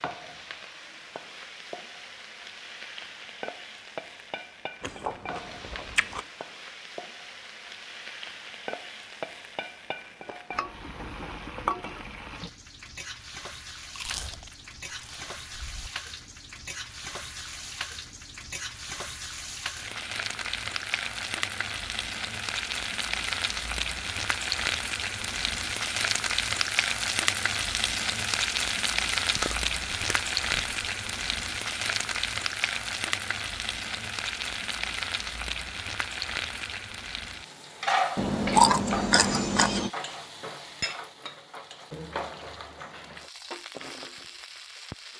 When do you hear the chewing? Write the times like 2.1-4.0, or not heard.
4.8-6.2, 13.9-15.9, 29.3-30.6, 38.1-39.9.